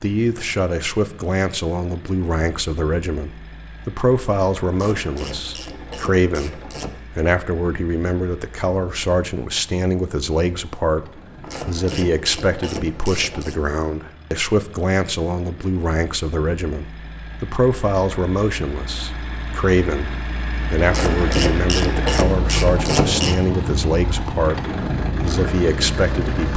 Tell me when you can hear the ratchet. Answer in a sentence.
You can hear the ratchet from 4.7 to 7.0 s, from 11.4 to 13.6 s and from 20.9 to 23.4 s.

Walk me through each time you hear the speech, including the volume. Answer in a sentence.
You can hear the speech from 0.0 to 26.5 s, at a steady volume.